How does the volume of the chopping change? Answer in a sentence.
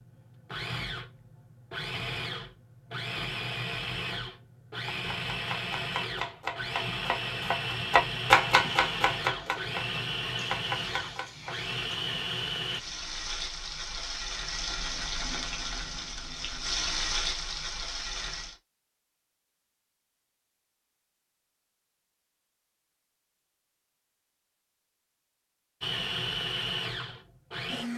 The loudness of the chopping goes up, then down.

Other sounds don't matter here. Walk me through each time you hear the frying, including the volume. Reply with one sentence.
The frying can be heard from 8.6 to 18.6 s, getting louder.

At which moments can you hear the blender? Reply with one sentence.
You can hear the blender from 0.0 to 12.8 s and from 25.8 to 27.9 s.